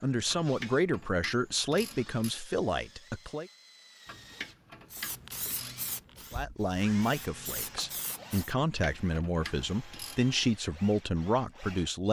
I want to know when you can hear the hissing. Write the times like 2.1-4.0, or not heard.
4.9-8.6.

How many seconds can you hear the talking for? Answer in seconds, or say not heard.
9 s.